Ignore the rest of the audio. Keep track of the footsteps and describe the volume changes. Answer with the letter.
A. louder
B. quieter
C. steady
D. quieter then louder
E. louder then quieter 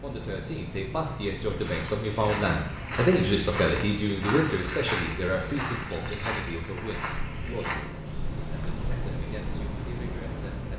B.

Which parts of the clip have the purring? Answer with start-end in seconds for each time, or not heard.
not heard.